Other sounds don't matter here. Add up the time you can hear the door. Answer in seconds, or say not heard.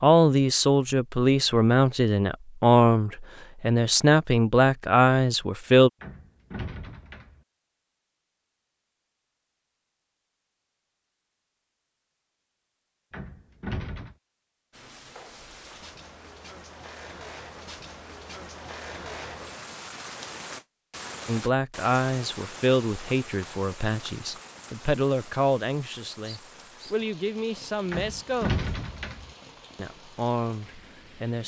4 s.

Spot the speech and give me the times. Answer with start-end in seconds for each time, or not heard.
0.0-5.9, 21.2-28.6, 29.8-31.4.